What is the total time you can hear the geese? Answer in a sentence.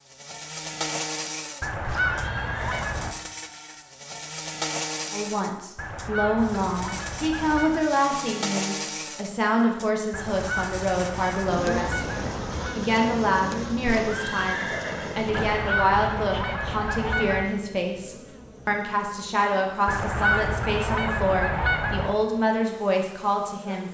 The geese can be heard for 11 seconds in total.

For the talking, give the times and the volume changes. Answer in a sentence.
The talking can be heard from 5.1 to 23.9 s, at a steady volume.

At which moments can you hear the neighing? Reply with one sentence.
You can hear the neighing from 1.8 to 3.0 s and from 13.8 to 15.6 s.